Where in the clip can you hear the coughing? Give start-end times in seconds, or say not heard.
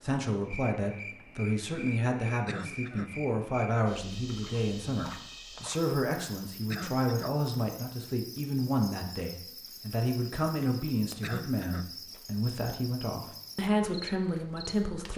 2.5-3.1, 6.7-7.3, 11.2-11.8.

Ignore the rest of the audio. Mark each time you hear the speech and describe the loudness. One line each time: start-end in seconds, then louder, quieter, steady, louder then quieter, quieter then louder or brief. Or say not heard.
0.0-15.1 steady.